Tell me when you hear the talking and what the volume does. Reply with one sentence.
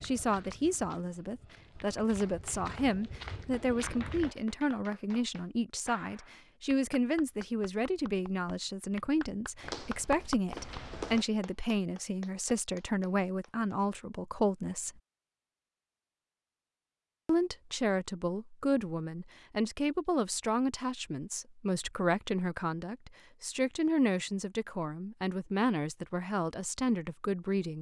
You can hear the talking from 0.0 to 14.9 s, at a steady volume; and from 17.2 to 27.7 s, at a steady volume.